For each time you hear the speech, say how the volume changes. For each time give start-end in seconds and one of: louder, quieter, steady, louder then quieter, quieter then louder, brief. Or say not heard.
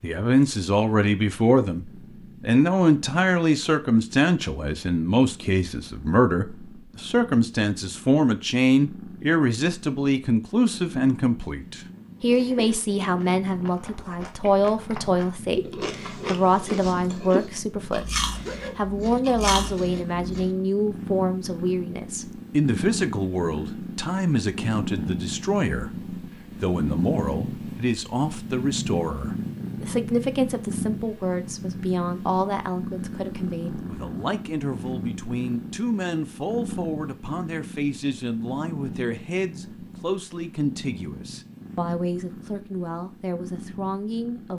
0.0-44.5 quieter.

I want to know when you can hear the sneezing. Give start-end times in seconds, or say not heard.
18.3-18.8.